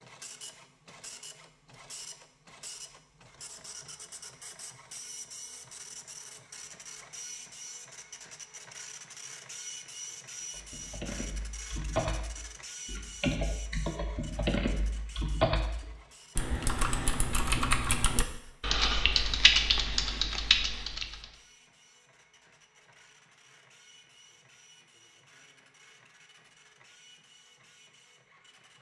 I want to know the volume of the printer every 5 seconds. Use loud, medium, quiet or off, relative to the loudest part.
loud, loud, loud, medium, quiet, quiet.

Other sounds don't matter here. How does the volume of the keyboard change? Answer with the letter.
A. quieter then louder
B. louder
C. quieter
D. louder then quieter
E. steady
B.